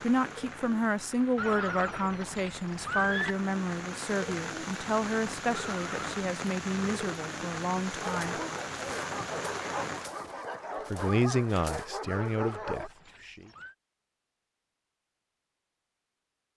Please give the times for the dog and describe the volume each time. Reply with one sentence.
The dog can be heard from 8.0 to 12.9 s, at a steady volume.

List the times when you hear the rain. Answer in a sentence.
You can hear the rain from 0.0 to 10.2 s.